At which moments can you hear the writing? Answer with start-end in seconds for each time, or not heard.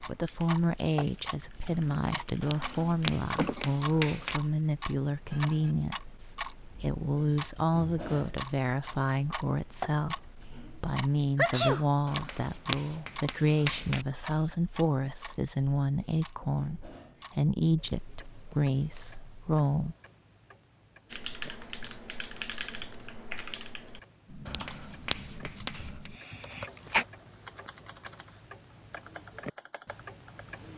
2.4-4.4, 12.1-14.1, 24.4-26.1.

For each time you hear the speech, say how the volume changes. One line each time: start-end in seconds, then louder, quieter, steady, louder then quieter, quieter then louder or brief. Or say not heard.
0.0-19.9 steady.